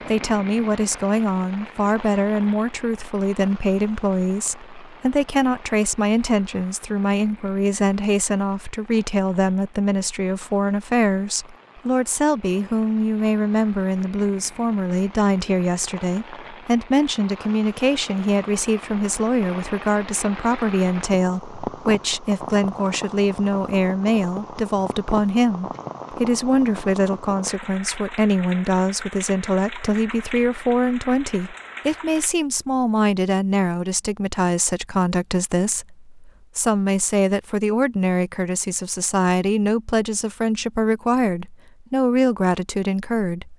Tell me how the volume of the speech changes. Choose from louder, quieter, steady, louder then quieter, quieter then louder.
steady.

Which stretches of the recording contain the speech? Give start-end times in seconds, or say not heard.
0.1-43.5.